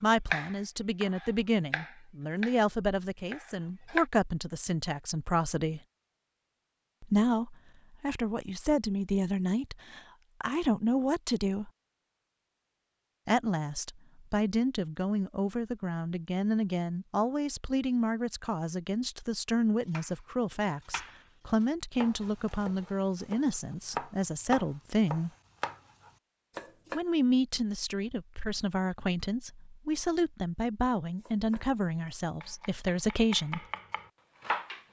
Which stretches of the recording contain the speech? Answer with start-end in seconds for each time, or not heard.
0.0-5.8, 7.0-11.7, 13.2-25.3, 26.9-33.6.